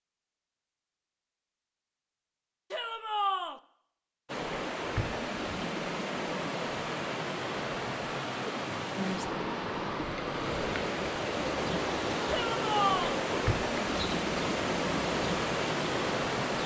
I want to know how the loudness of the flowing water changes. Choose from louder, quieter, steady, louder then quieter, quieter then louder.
steady.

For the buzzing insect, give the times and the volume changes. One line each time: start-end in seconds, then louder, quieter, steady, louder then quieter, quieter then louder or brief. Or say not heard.
11.2-16.6 steady.